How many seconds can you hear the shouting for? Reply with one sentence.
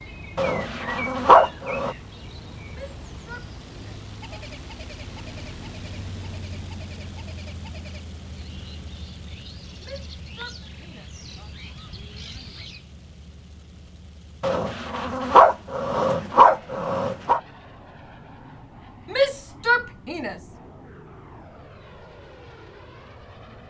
The shouting can be heard for 5 seconds in total.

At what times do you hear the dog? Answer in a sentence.
You can hear the dog from 0.3 to 1.9 s and from 14.4 to 17.4 s.